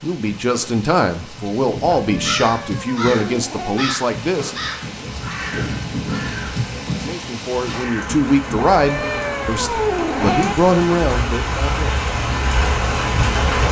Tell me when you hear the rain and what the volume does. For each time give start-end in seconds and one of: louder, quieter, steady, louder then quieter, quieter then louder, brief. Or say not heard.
0.0-13.6 louder.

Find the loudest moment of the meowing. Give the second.
10 s.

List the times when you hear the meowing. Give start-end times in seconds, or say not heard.
1.9-3.9, 8.5-10.6.